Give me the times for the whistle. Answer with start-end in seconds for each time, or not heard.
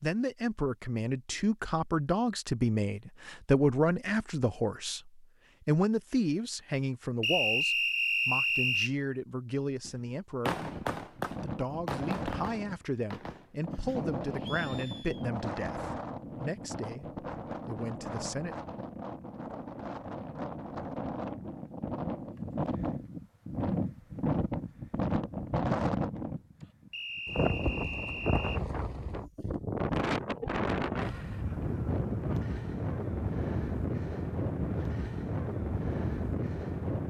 7.2-8.9, 26.9-28.6.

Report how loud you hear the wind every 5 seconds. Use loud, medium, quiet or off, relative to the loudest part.
off, off, medium, medium, loud, loud, loud, loud.